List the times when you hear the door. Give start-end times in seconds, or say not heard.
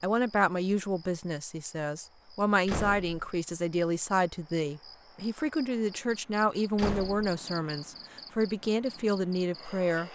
2.6-3.2, 6.8-7.3.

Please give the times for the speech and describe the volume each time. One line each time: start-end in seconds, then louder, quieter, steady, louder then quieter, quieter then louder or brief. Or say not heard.
0.0-10.1 steady.